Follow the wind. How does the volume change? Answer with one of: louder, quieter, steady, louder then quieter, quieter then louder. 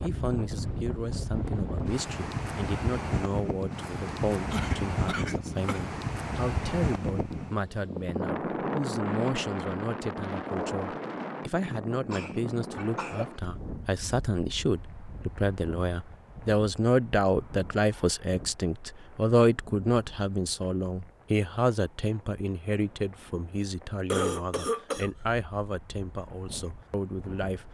quieter.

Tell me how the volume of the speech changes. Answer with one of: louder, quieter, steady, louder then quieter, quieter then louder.
louder then quieter.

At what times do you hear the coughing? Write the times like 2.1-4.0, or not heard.
4.5-5.9, 11.6-13.3, 24.1-25.1.